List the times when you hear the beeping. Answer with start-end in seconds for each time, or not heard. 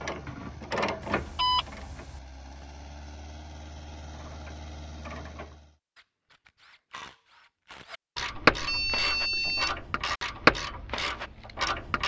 1.0-2.2, 8.4-9.8.